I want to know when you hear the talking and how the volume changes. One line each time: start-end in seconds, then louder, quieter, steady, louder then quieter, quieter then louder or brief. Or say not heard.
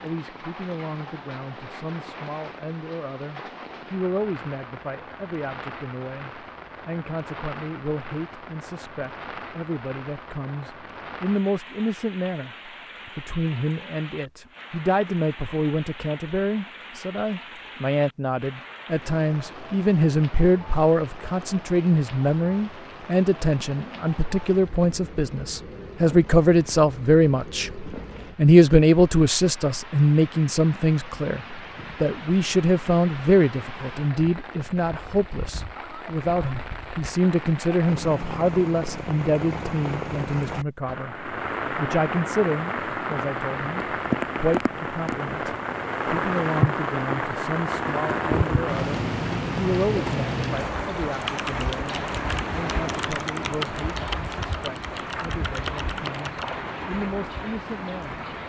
0.0-58.2 louder then quieter.